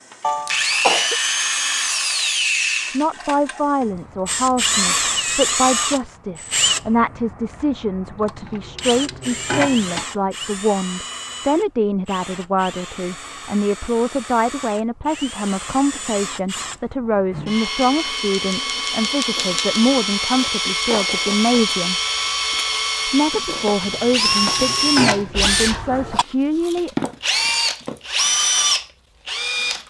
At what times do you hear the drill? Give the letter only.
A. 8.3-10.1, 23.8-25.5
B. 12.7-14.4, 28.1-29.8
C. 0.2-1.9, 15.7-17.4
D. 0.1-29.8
D.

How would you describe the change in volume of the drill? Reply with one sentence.
The volume of the drill goes down, then up.